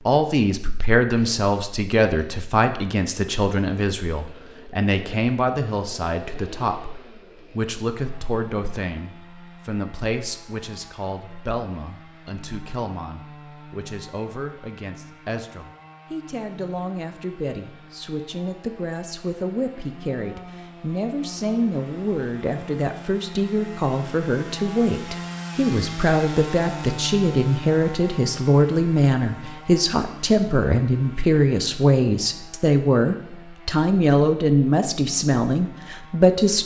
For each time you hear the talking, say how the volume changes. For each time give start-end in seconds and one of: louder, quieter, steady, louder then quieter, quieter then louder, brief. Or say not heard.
0.1-36.6 quieter then louder.